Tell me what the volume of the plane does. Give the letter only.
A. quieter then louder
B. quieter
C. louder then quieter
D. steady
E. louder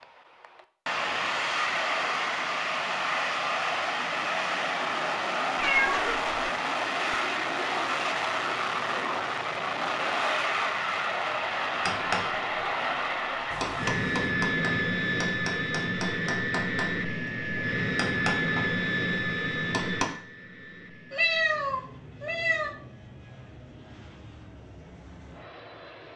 B.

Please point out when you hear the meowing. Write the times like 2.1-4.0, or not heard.
5.5-6.3, 13.5-14.2, 21.1-22.8.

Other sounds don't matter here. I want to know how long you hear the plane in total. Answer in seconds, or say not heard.
26 s.